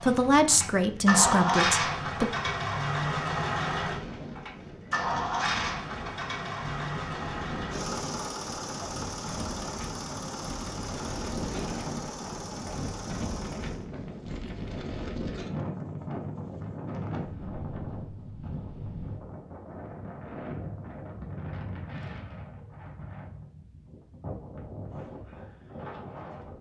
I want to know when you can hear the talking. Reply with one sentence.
The talking can be heard from 0.0 to 2.3 s.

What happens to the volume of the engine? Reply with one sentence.
The loudness of the engine goes down.